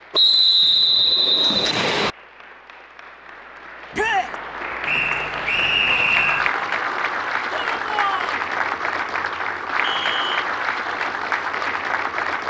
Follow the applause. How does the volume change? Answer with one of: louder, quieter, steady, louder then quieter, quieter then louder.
louder.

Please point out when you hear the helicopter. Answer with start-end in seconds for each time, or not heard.
not heard.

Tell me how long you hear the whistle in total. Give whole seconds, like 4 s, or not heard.
4 s.